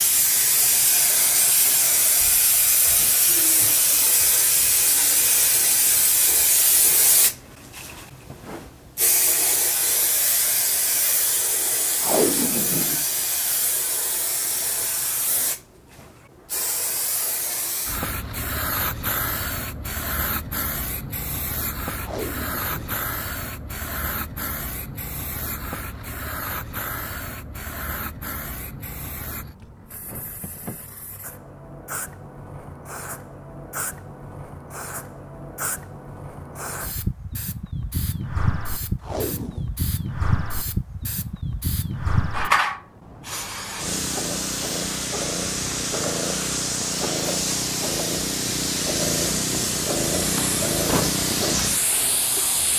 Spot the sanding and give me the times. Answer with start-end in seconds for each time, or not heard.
not heard.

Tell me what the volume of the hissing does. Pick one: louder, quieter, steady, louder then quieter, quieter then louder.
quieter then louder.